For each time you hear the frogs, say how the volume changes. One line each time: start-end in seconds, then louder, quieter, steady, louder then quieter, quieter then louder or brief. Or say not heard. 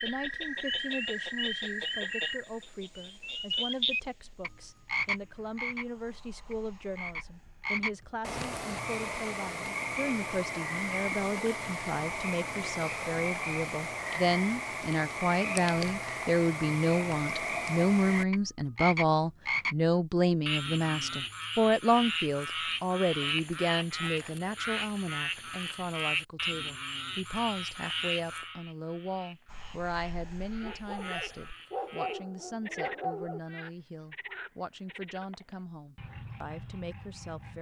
0.0-37.5 quieter.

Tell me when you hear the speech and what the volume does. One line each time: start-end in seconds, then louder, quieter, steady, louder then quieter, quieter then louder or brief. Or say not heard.
0.0-37.5 louder then quieter.